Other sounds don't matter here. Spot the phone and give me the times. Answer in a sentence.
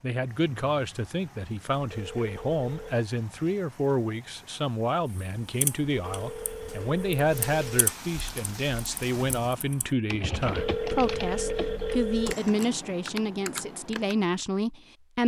You can hear the phone from 1.9 to 3.0 s, from 6.0 to 7.8 s and from 10.4 to 12.3 s.